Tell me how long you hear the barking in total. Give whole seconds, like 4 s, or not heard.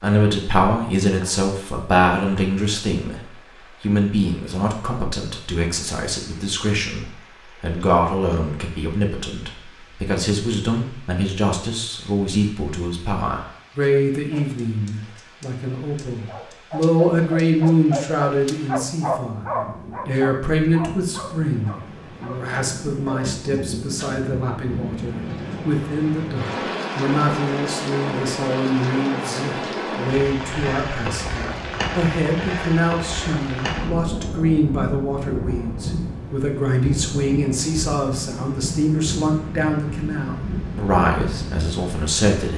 9 s.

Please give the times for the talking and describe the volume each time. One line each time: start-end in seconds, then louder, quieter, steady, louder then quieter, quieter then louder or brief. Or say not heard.
0.0-42.5 steady.